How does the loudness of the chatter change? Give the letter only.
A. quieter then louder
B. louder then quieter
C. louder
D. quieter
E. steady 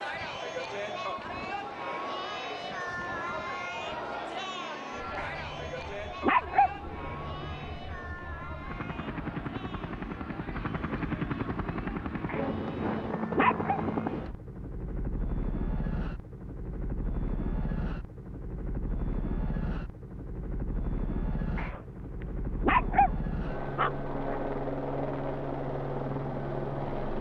D.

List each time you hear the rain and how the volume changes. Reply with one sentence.
You can't hear the rain here.